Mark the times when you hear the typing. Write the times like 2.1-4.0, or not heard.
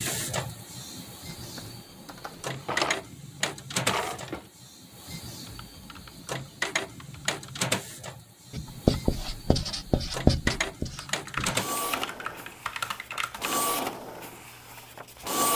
1.2-2.5, 5.5-7.6, 10.9-13.7.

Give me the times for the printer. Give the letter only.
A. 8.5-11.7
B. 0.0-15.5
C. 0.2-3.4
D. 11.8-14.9
B.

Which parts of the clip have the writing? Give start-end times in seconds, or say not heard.
8.5-11.7.